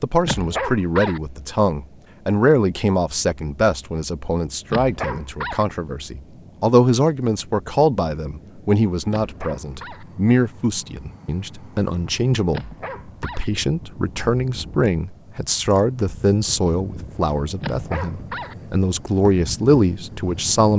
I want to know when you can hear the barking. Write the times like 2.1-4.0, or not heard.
0.2-1.2, 4.7-5.7, 9.1-10.1, 12.5-13.4, 17.6-18.6.